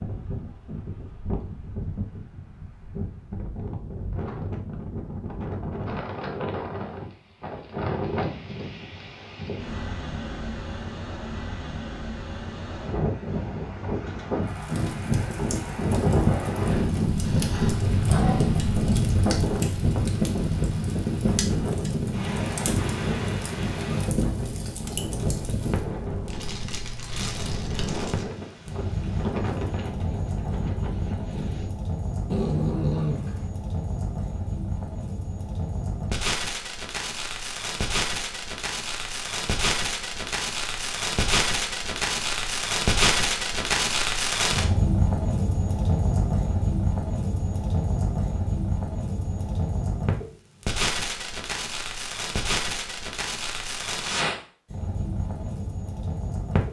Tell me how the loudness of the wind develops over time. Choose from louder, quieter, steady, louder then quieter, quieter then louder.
louder then quieter.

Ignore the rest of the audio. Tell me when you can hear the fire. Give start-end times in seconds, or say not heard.
14.4-56.6.